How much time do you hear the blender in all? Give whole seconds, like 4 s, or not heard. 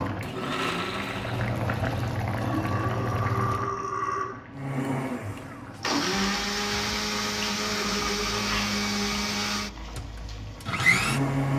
9 s.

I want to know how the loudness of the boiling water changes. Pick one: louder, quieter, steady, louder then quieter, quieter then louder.
quieter.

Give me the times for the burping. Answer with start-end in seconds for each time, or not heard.
2.4-4.2, 8.3-8.8.